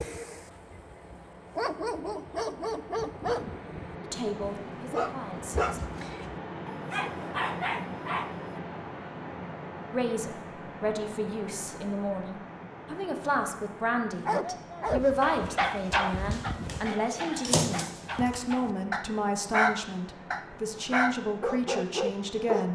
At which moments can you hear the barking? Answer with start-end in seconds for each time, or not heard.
0.0-8.6, 14.2-22.7.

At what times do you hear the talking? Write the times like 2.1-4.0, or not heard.
4.0-5.8, 9.9-22.7.